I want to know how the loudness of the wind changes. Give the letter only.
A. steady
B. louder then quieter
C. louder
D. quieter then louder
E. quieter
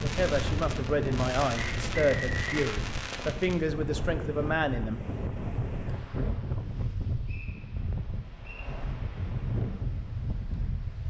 A.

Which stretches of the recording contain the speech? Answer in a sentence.
You can hear the speech from 0.0 to 5.0 s.